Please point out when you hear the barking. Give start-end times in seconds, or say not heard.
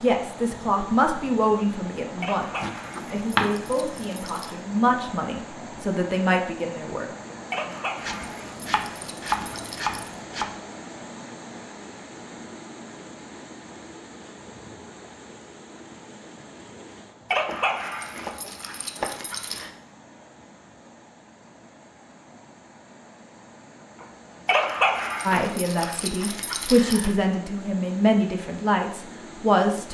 2.2-4.5, 7.5-10.2, 17.3-19.7, 24.4-27.1.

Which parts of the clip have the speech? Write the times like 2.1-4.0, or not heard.
0.0-7.0, 25.2-29.8.